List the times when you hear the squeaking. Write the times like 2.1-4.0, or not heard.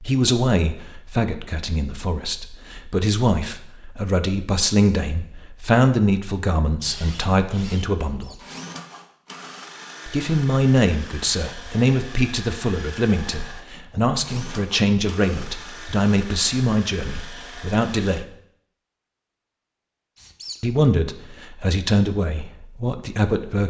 8.0-8.4, 20.1-20.6.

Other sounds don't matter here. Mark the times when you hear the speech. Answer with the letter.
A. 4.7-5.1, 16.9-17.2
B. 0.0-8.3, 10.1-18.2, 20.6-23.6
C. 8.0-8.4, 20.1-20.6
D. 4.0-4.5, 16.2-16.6
B.